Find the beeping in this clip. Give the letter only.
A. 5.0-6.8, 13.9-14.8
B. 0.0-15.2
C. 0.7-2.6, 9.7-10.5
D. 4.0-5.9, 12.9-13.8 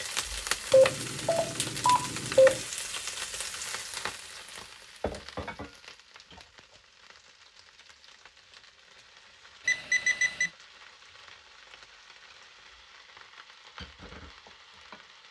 C.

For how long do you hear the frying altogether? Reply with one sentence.
You can hear the frying for 15 seconds altogether.